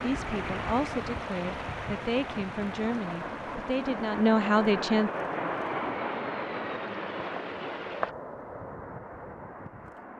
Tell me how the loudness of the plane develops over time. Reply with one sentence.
The loudness of the plane goes up, then down.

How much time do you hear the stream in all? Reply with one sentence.
You can hear the stream for 8 seconds altogether.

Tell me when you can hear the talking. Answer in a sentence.
You can hear the talking from 0.0 to 5.1 s.